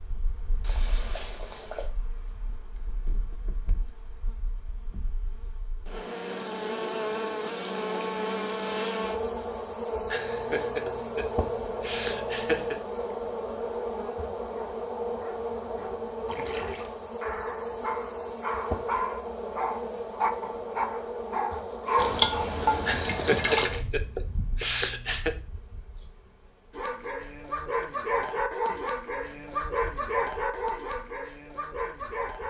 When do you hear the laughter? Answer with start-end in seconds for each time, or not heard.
10.1-12.8, 22.8-25.4.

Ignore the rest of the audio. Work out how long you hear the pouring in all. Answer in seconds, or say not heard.
4 s.